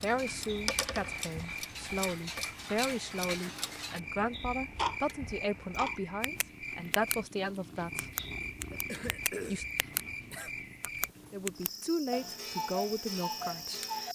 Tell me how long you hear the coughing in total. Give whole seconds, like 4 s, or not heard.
2 s.